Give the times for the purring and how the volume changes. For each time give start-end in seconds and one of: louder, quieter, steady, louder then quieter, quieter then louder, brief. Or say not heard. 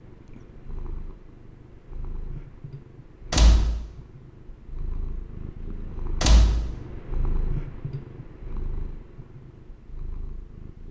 0.0-10.8 louder then quieter.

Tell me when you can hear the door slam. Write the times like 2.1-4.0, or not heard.
3.3-3.8, 6.2-6.7.